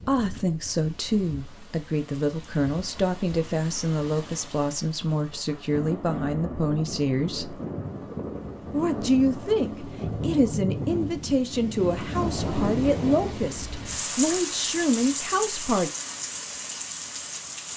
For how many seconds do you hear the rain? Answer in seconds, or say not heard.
18 s.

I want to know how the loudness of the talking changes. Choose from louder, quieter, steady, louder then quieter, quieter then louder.
steady.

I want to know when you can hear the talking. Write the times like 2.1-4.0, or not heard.
0.0-7.6, 8.7-15.9.